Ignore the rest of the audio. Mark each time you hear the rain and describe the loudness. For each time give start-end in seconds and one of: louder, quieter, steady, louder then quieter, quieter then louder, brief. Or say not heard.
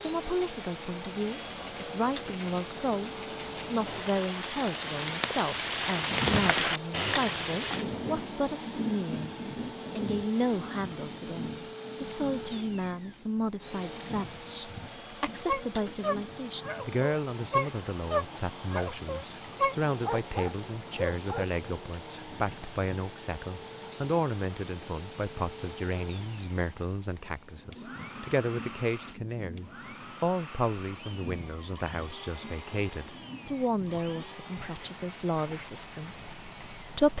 0.0-37.1 quieter.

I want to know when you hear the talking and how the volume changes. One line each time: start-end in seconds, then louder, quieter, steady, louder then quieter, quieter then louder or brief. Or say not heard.
0.0-9.3 steady
9.9-37.1 steady.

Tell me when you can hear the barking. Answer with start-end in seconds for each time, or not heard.
15.4-21.4.